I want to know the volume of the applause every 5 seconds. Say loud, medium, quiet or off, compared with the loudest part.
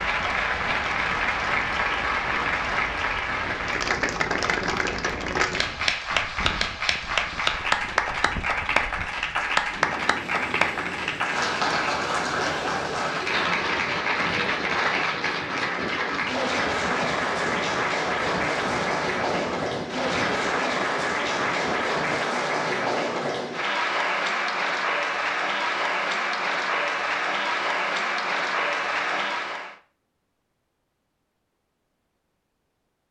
loud, loud, loud, loud, loud, loud, off.